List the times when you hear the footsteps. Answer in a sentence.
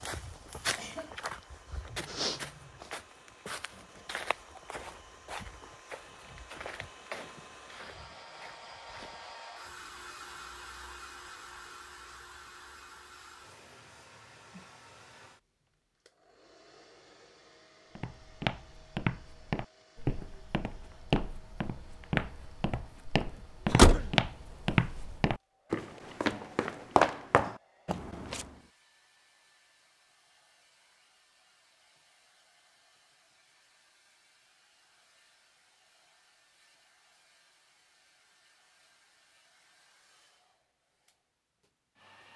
The footsteps can be heard from 0.0 to 9.8 s and from 17.9 to 28.5 s.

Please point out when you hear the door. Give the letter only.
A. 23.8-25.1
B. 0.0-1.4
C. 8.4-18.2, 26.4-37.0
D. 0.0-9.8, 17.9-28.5
A.